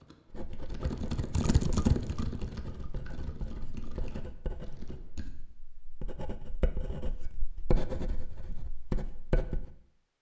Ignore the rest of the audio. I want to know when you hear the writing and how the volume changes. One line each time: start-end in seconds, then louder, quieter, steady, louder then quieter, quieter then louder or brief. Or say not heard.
0.3-9.7 quieter then louder.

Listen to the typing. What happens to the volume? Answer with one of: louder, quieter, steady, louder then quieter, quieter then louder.
louder then quieter.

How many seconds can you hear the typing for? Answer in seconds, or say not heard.
5 s.